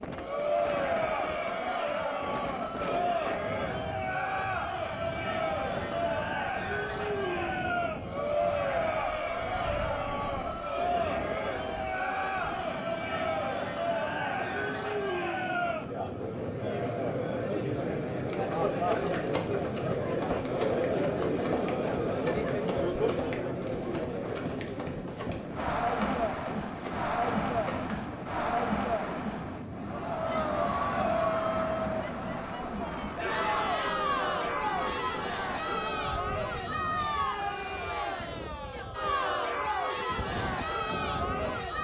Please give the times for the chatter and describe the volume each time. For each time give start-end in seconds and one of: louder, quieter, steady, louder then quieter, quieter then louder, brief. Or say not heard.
0.1-41.7 steady.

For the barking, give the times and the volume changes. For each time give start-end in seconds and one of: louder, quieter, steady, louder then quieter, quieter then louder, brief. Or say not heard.
not heard.